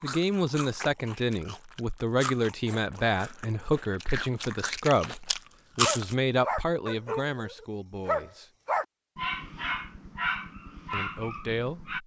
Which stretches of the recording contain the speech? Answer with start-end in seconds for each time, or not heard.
0.0-8.5, 10.9-11.9.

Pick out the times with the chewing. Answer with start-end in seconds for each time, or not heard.
0.0-6.2.